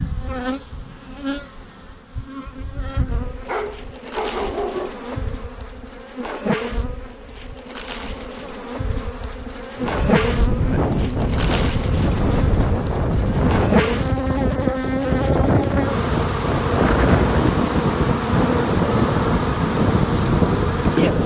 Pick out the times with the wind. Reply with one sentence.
The wind can be heard from 9.8 to 21.2 s.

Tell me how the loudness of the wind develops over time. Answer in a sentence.
The volume of the wind stays about the same.